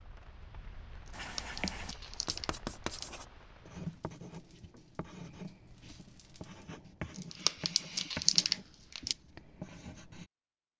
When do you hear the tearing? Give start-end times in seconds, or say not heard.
1.1-3.0, 7.2-9.2.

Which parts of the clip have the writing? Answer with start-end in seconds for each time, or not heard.
1.1-10.3.